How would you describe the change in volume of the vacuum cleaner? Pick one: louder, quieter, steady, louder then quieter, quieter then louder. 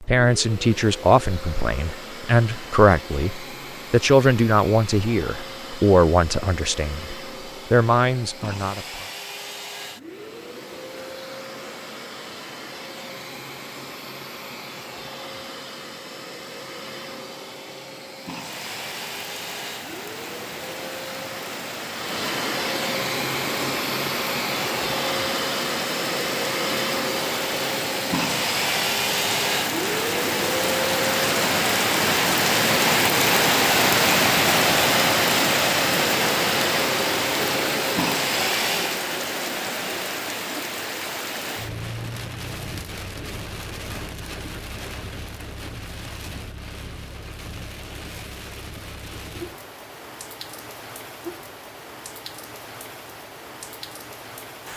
louder.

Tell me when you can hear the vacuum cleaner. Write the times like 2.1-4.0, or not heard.
0.0-39.0.